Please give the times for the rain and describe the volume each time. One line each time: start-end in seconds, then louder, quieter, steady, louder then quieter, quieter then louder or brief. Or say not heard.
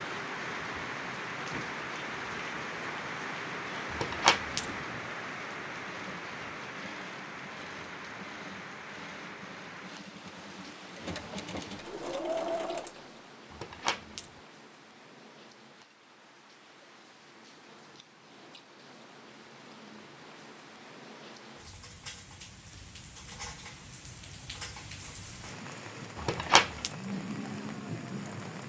0.0-28.6 quieter then louder.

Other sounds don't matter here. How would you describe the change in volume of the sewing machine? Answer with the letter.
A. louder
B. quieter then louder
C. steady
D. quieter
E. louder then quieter
A.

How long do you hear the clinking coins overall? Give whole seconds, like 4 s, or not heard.
2 s.